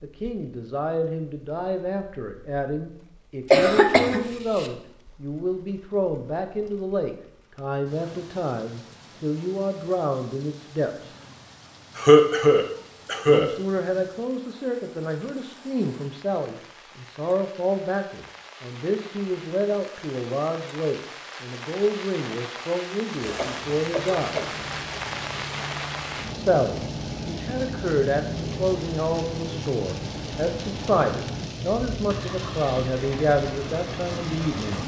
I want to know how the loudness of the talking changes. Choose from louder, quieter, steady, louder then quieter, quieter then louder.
steady.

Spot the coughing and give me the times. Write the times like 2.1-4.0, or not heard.
3.5-4.7, 11.9-13.6, 23.4-24.6.